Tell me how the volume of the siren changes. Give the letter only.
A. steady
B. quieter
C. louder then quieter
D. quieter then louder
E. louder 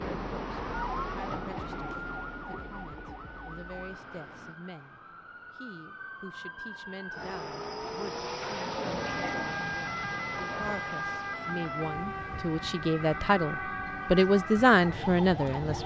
D.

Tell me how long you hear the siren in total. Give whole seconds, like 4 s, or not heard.
16 s.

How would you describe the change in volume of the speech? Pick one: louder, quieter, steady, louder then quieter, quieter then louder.
louder.